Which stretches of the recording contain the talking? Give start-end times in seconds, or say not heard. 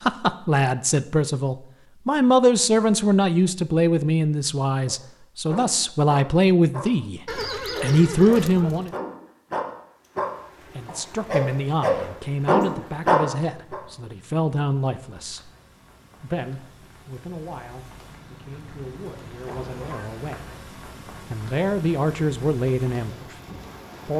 0.0-7.2, 7.8-8.9, 10.8-15.4, 16.2-20.5, 21.3-23.4.